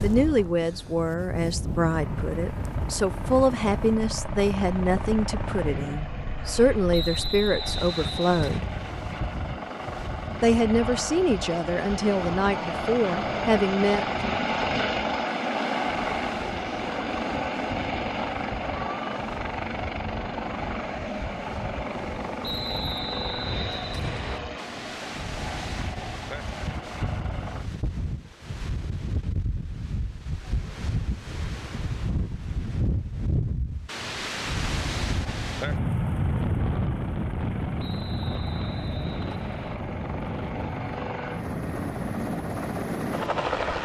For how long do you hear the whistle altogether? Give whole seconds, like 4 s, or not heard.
6 s.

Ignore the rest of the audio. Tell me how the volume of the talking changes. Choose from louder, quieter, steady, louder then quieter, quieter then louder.
steady.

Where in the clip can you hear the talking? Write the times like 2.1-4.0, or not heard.
0.0-8.7, 10.4-14.1.